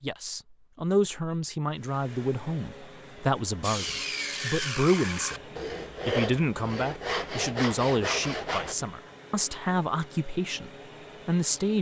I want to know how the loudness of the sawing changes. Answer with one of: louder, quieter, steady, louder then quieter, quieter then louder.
steady.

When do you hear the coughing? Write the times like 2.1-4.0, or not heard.
not heard.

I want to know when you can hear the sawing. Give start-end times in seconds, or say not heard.
3.6-8.8.